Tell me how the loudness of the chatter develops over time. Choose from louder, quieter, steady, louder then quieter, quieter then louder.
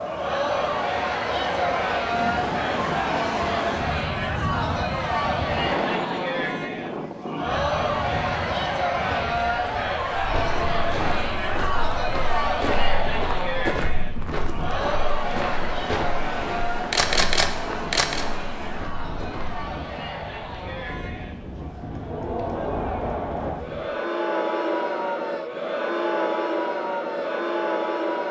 quieter then louder.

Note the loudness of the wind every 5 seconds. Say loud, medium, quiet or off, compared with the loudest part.
loud, loud, medium, medium, medium, off.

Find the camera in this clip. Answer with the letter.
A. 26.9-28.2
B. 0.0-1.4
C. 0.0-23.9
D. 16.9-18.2
D.